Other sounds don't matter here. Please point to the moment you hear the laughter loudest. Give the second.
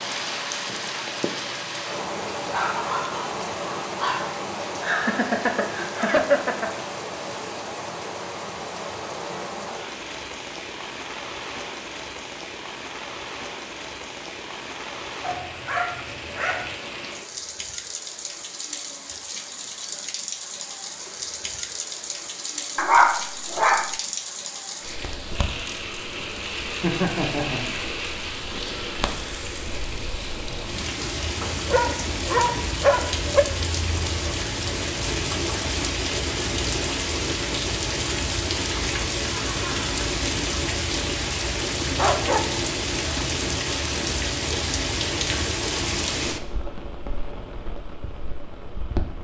6 s.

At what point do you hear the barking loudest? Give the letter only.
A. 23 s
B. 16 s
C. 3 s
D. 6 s
A.